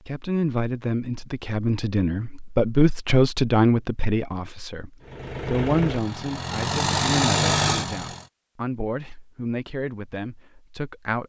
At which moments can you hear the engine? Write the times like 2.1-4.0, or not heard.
5.0-8.2.